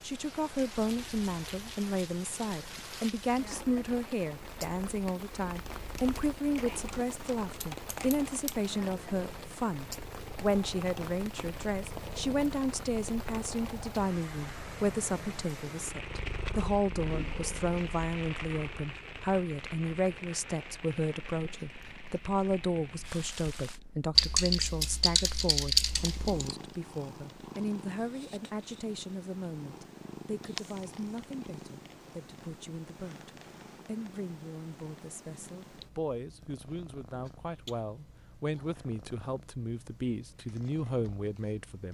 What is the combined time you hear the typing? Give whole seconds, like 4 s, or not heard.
5 s.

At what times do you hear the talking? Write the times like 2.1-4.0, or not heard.
0.0-41.8.